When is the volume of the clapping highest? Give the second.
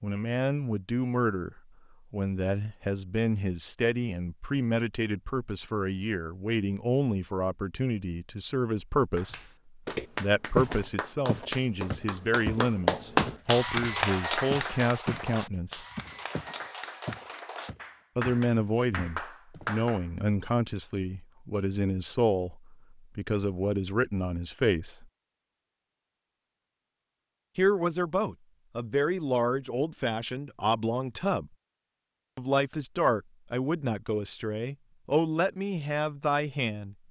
13 s.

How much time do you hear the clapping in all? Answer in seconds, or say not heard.
11 s.